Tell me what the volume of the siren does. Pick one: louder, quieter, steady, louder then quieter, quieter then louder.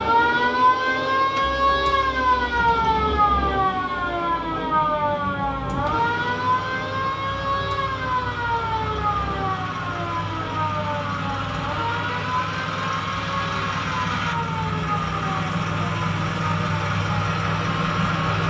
quieter.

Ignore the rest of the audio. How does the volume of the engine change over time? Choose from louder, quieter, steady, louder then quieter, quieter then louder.
louder.